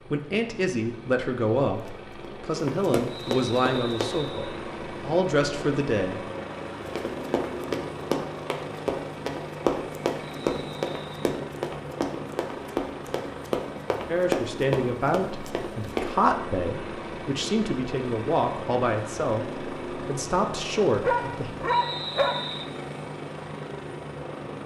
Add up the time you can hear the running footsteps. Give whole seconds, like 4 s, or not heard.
12 s.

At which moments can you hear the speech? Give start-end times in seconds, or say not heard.
0.1-6.2, 14.1-21.5.